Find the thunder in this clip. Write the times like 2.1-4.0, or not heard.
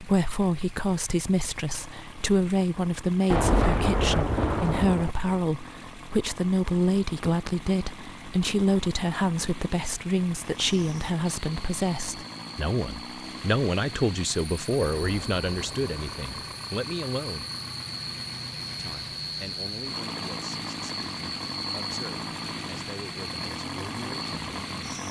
3.3-5.2, 14.9-16.6.